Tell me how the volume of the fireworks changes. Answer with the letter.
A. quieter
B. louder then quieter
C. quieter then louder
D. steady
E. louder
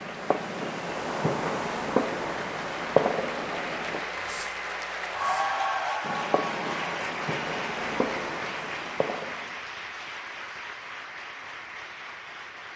C.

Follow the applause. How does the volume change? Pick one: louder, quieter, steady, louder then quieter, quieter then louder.
louder then quieter.